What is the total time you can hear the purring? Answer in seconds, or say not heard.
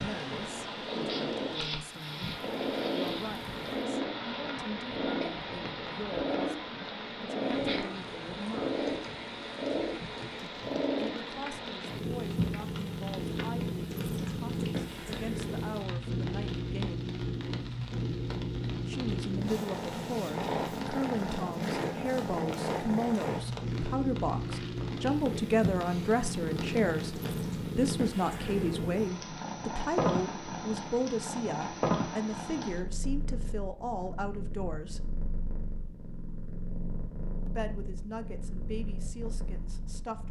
40 s.